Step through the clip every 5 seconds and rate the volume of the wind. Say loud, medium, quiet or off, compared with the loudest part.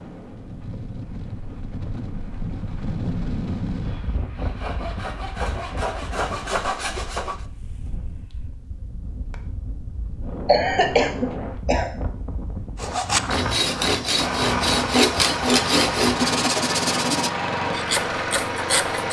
loud, medium, loud, loud.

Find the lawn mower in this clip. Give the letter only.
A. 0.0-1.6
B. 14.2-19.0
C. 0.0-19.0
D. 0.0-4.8
B.